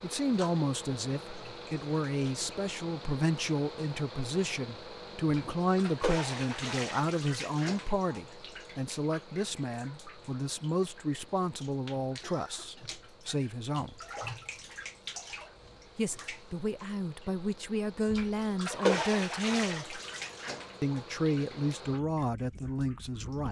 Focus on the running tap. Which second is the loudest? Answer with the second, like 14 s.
19 s.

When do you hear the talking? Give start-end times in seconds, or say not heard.
0.0-13.9, 15.9-20.0, 20.8-23.4.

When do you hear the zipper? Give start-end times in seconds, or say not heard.
not heard.